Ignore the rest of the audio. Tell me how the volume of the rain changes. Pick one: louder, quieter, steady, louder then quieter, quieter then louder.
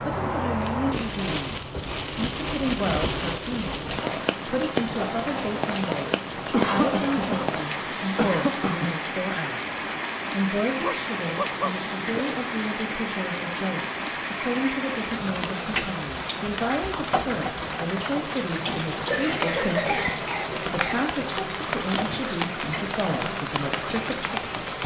steady.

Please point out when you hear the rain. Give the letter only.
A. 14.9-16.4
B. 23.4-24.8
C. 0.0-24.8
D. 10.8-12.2
C.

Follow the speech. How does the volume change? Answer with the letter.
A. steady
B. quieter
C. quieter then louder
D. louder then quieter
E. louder
A.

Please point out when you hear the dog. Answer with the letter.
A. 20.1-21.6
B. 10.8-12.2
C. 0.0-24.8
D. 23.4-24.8
B.